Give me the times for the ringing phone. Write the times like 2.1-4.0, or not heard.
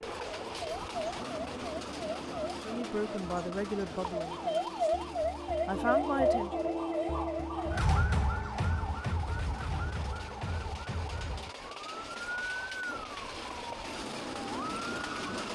not heard.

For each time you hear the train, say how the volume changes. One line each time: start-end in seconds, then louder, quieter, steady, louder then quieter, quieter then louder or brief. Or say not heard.
0.0-15.5 quieter then louder.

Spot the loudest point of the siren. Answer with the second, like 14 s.
6 s.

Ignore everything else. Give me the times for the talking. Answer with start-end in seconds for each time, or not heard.
2.6-6.5.